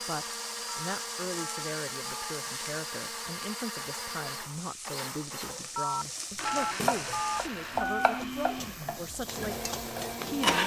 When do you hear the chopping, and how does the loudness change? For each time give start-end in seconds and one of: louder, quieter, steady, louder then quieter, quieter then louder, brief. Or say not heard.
6.5-10.6 louder then quieter.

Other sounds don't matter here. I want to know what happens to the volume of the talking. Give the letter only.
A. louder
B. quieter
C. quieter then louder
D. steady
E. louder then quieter
D.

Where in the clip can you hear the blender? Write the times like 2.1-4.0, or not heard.
0.0-10.6.